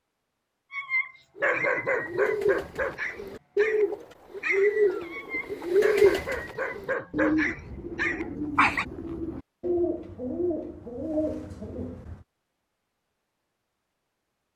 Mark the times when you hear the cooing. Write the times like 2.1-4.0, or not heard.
1.4-12.2.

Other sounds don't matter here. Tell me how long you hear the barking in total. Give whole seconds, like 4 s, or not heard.
8 s.